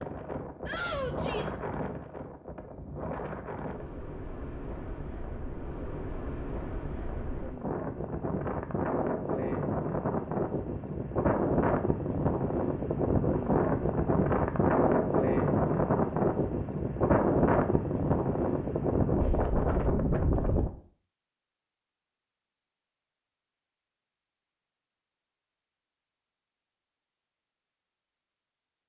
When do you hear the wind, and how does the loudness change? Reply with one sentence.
The wind can be heard from 0.0 to 20.7 s, getting louder.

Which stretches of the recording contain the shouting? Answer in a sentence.
The shouting can be heard from 0.7 to 1.6 s.